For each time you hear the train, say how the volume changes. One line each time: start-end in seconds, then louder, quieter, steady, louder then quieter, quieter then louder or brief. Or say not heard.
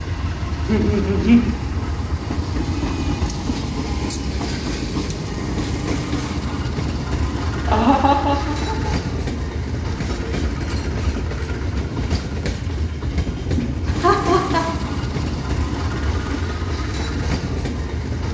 0.0-18.2 steady.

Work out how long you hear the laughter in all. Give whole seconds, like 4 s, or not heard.
3 s.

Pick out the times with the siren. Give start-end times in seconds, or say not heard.
not heard.